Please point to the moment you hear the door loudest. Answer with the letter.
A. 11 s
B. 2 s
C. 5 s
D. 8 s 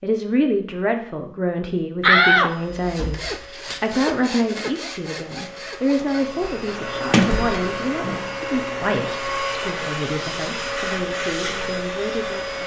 B.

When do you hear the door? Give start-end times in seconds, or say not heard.
2.0-3.8, 7.1-8.3.